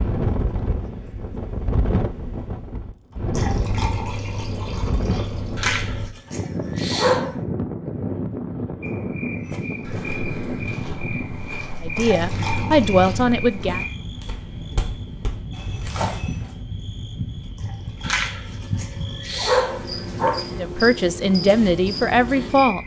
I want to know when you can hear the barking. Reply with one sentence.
The barking can be heard from 5.5 to 7.3 s and from 18.0 to 20.4 s.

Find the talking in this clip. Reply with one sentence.
You can hear the talking from 11.8 to 13.8 s and from 20.6 to 22.8 s.